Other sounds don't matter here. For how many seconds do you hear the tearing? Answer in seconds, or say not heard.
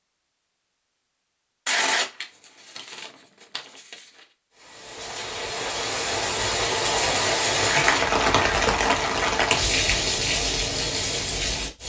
3 s.